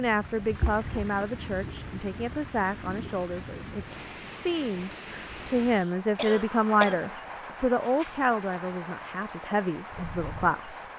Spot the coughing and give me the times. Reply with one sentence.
The coughing can be heard from 0.2 to 1.1 s and from 5.8 to 7.0 s.